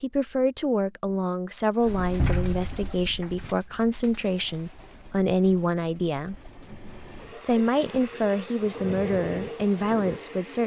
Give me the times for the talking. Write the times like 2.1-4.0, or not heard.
0.0-6.3, 7.5-10.6.